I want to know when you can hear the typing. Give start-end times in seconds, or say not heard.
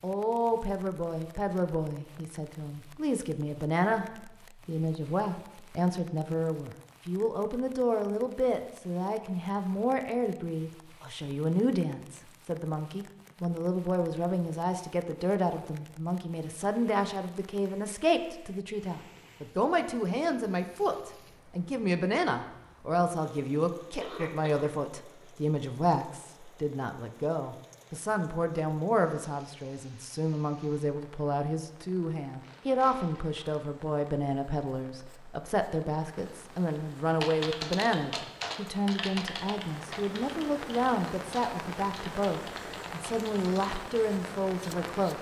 37.2-44.0.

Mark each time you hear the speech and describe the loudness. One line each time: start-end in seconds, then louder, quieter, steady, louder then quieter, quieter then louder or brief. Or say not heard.
0.0-45.1 steady.